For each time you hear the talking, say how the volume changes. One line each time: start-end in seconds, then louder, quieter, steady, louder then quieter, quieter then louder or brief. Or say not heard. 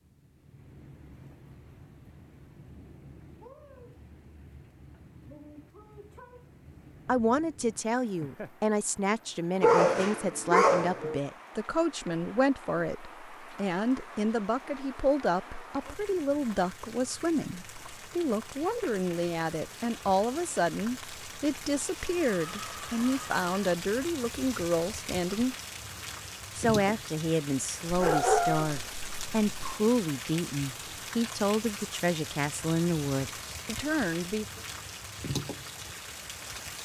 7.0-25.6 steady
26.6-34.6 steady.